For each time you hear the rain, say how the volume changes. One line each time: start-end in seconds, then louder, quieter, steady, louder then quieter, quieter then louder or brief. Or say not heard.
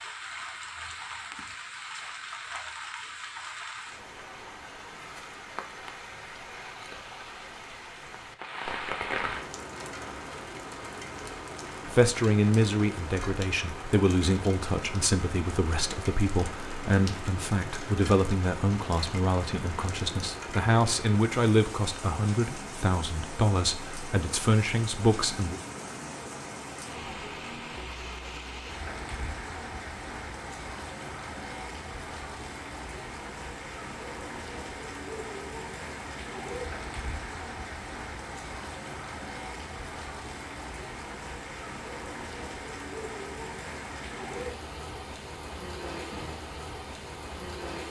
0.0-47.8 steady.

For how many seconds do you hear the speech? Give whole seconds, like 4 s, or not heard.
14 s.